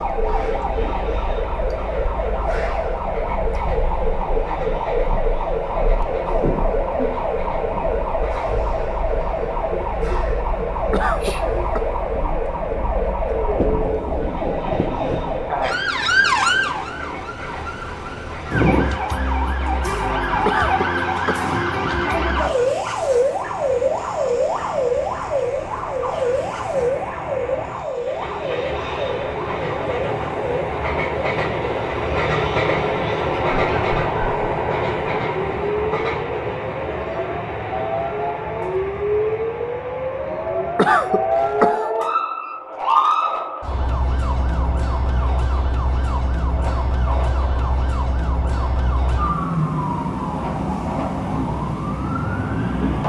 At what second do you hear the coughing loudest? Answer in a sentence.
The volume of the coughing peaks at 41 seconds.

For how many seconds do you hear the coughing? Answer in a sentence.
You can hear the coughing for 3 seconds altogether.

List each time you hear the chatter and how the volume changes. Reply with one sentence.
The chatter can't be heard in this clip.